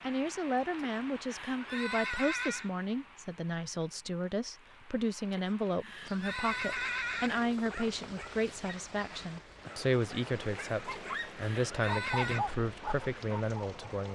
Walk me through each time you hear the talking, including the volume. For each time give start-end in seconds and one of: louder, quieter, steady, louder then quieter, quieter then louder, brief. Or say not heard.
0.0-14.1 steady.